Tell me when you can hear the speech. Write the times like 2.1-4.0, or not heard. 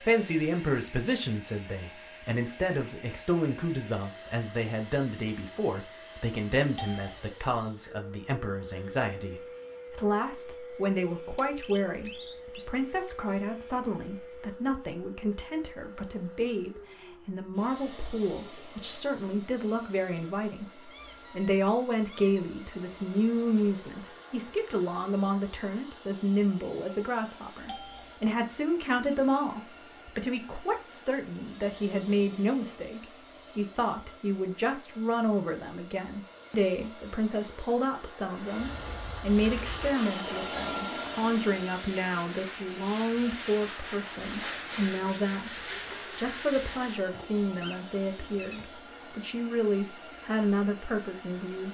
0.0-51.6.